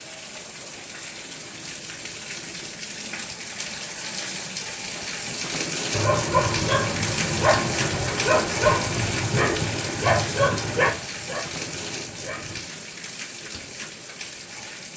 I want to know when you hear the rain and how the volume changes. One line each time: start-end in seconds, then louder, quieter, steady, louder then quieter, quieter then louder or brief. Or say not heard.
0.0-14.9 louder then quieter.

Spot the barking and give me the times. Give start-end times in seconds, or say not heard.
5.9-12.7.